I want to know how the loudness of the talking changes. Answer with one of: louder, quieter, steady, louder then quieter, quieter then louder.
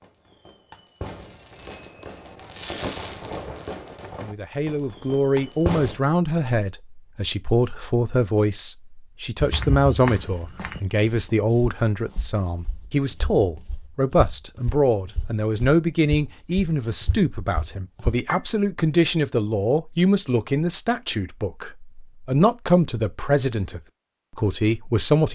steady.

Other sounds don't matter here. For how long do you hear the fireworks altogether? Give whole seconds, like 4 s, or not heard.
6 s.